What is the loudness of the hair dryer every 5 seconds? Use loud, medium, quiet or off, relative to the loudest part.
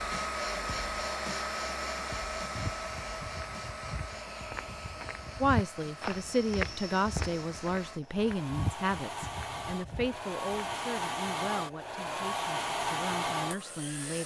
loud, medium, loud.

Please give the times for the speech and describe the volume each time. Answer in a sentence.
You can hear the speech from 5.4 to 14.2 s, getting quieter.